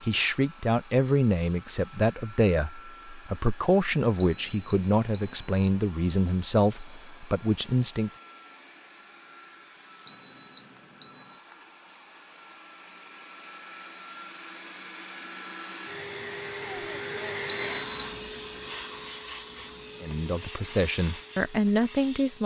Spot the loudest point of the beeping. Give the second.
18 s.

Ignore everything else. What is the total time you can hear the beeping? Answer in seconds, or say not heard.
4 s.